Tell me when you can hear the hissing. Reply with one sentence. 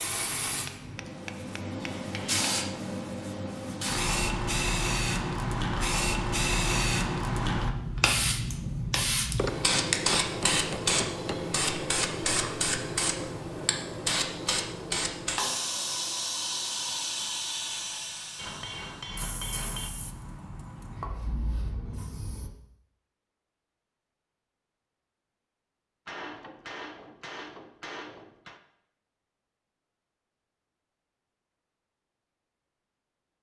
You can hear the hissing from 0.0 to 22.5 s.